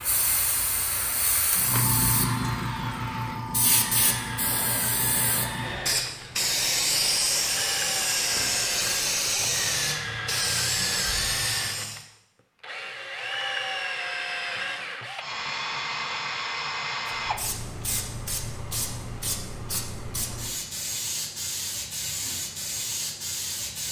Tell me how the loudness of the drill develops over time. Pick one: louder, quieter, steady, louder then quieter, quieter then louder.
louder.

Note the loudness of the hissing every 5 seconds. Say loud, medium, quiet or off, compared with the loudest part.
loud, loud, loud, medium, medium.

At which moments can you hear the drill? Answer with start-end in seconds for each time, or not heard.
0.0-18.6.